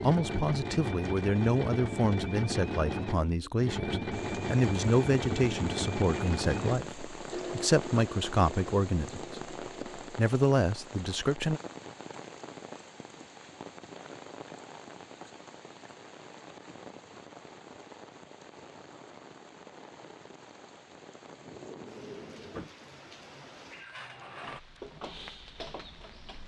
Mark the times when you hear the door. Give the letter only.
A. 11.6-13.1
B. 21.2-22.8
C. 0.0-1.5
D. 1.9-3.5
B.